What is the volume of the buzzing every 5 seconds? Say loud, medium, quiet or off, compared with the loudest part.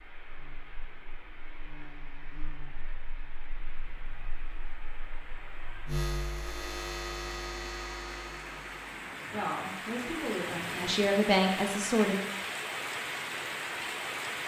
quiet, loud, off.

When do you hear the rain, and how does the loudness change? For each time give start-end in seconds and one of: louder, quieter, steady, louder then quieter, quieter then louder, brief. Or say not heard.
0.0-14.4 louder.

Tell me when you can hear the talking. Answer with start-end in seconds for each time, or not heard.
9.3-12.2.